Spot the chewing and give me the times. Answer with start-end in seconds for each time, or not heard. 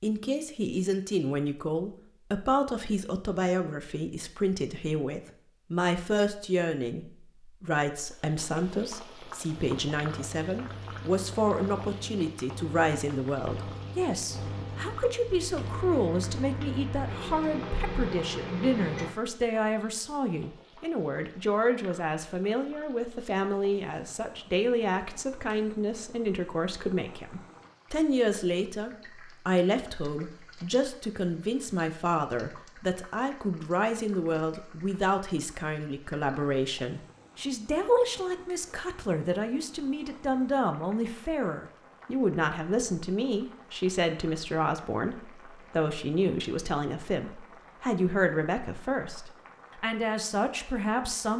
not heard.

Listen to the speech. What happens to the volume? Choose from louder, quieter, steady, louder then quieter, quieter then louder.
steady.